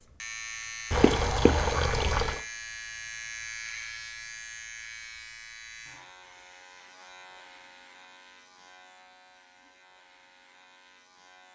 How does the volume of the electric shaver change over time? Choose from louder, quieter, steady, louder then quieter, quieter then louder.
quieter.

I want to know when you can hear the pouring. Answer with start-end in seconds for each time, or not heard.
0.9-2.4.